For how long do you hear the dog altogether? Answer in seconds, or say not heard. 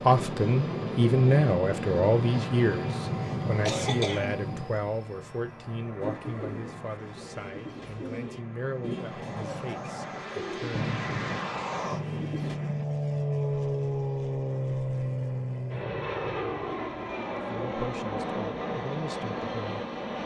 not heard.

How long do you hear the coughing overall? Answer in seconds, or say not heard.
3 s.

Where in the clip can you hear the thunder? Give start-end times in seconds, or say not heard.
11.1-12.8.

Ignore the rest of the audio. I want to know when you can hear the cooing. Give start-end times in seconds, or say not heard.
6.0-12.6.